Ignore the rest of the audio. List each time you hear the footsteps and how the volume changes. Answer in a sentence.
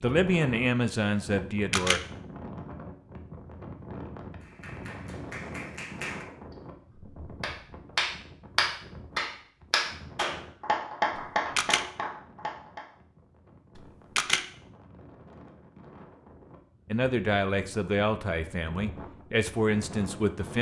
The footsteps can't be heard in this clip.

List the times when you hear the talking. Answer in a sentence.
You can hear the talking from 0.0 to 2.0 s and from 16.9 to 20.5 s.